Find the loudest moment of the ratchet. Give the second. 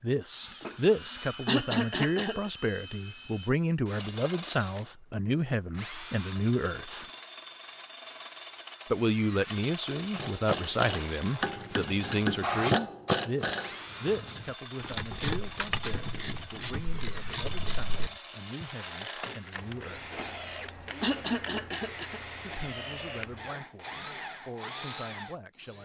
13 s.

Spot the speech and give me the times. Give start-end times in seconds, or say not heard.
0.0-7.0, 8.9-20.1, 22.4-25.8.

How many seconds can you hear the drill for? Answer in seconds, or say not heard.
26 s.